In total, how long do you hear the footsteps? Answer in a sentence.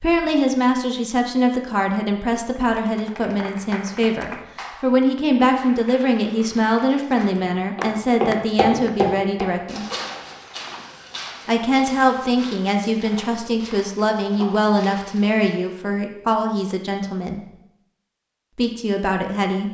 The footsteps can be heard for 8 seconds in total.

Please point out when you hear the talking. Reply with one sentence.
You can hear the talking from 0.0 to 9.8 s, from 11.4 to 17.5 s and from 18.6 to 19.6 s.